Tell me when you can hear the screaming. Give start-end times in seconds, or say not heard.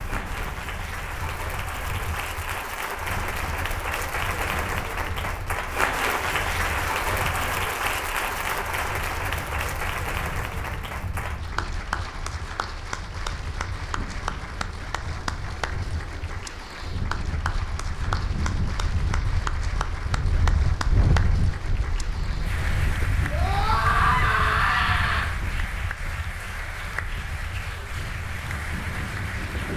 23.3-25.2.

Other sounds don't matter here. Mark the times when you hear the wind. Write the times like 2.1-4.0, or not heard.
0.0-29.7.